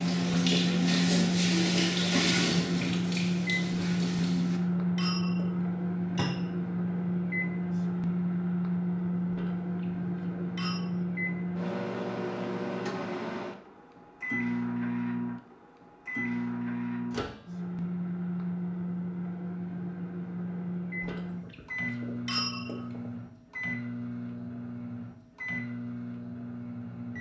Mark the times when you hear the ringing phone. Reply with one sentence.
You can't hear the ringing phone here.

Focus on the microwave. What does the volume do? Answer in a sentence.
The loudness of the microwave goes down.